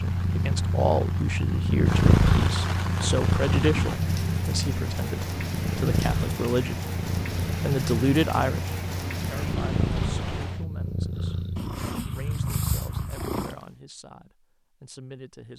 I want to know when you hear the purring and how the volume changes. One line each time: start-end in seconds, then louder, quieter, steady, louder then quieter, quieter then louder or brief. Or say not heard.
0.0-13.6 quieter.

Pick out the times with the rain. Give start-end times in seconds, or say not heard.
0.0-10.7.